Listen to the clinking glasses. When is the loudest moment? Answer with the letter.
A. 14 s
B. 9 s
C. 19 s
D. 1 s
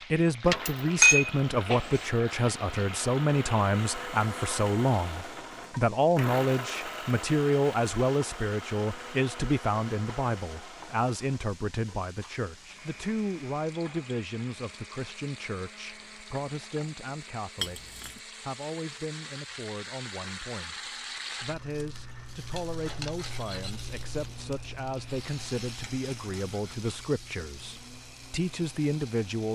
D.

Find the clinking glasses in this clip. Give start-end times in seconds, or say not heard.
1.0-2.0, 17.6-18.2.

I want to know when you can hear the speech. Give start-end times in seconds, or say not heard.
0.1-29.4.